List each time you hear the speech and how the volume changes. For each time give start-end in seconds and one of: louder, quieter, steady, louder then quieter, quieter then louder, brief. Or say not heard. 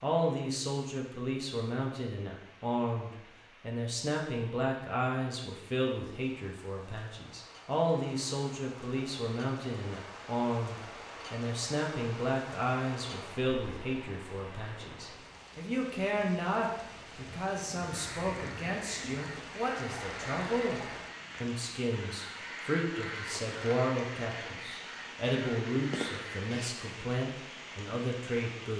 0.0-28.7 steady.